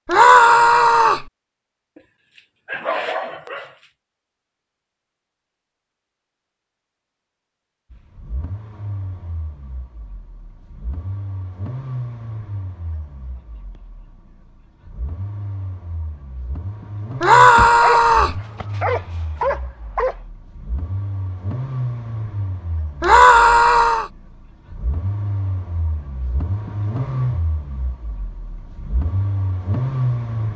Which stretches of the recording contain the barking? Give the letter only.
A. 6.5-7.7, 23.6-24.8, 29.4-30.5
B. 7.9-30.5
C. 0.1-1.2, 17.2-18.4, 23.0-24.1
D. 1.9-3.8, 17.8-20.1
D.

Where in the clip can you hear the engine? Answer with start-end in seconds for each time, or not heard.
7.9-30.5.